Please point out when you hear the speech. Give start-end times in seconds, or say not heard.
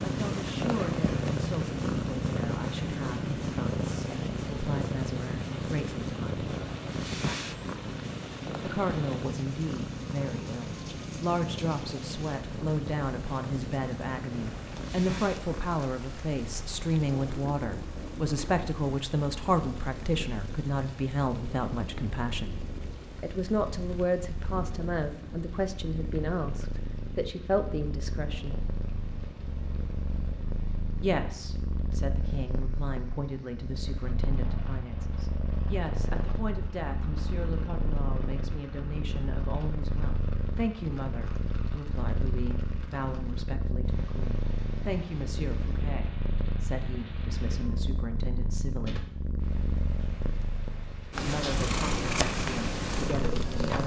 0.0-6.5, 8.6-22.6, 23.2-28.6, 31.0-49.0, 51.1-53.8.